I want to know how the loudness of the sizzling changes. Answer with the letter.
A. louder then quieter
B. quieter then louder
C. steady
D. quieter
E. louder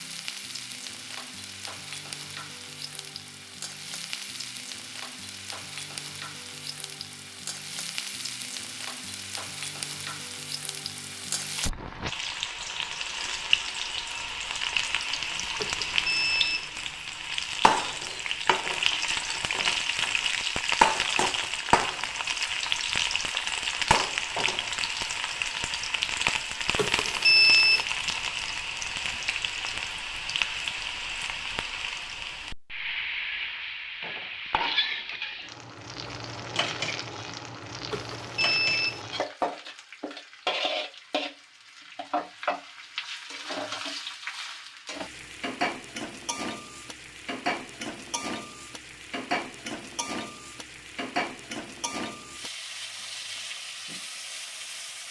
A.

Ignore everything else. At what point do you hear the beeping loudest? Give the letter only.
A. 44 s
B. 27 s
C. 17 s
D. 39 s
B.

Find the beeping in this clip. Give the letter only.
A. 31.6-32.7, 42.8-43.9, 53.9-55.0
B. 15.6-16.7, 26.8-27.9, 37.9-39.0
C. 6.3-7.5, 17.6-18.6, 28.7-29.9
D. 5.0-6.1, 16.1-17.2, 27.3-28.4
B.